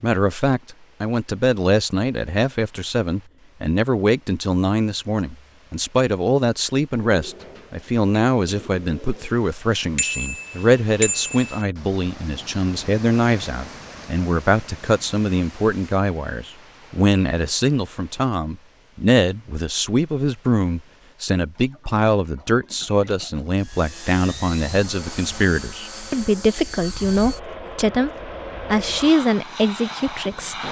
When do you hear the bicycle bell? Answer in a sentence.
The bicycle bell can be heard from 9.9 to 11.7 s.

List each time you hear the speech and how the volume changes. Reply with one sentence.
You can hear the speech from 0.0 to 28.1 s, at a steady volume; and briefly from 28.7 to 30.6 s.